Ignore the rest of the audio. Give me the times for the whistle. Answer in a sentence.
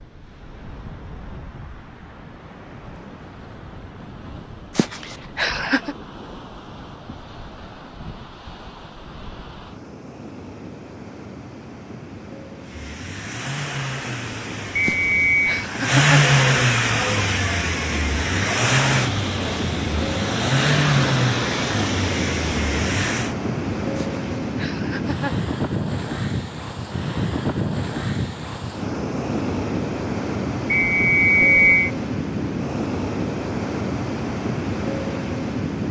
The whistle can be heard from 14.8 to 15.5 s and from 30.7 to 31.9 s.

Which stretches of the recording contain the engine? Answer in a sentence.
You can hear the engine from 12.6 to 23.4 s.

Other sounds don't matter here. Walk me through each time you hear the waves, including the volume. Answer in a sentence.
You can hear the waves from 0.0 to 35.8 s, getting louder.